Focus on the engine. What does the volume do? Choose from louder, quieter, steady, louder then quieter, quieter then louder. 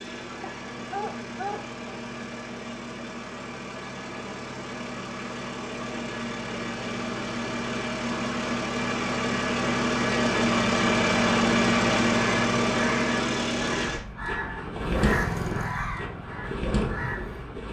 louder then quieter.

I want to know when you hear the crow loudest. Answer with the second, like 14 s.
15 s.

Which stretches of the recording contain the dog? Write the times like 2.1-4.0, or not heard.
0.4-1.8.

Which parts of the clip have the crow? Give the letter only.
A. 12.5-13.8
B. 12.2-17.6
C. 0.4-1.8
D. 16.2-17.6
B.